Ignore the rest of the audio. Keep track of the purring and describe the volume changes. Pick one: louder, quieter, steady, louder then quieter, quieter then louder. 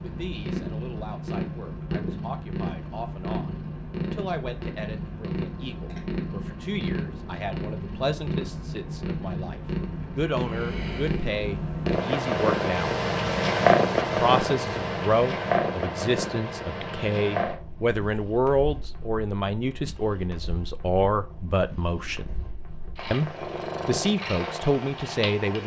louder then quieter.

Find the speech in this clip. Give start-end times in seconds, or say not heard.
0.0-12.9, 14.2-22.3, 23.1-25.6.